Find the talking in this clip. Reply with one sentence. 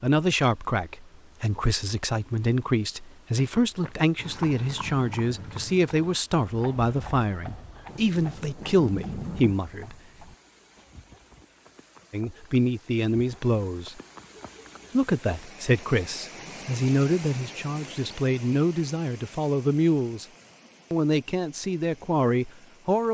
The talking can be heard from 0.0 to 9.9 s, from 12.1 to 14.0 s, from 14.9 to 20.2 s and from 20.9 to 23.1 s.